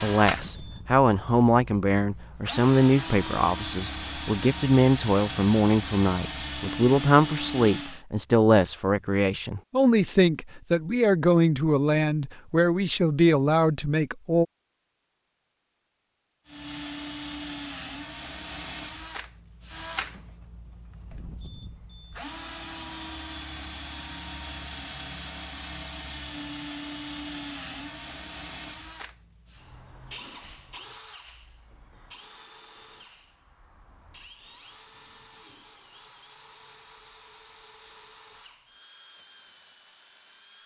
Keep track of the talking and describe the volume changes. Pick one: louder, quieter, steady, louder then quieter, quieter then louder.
steady.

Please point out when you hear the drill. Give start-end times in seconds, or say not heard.
0.0-8.1, 16.4-40.6.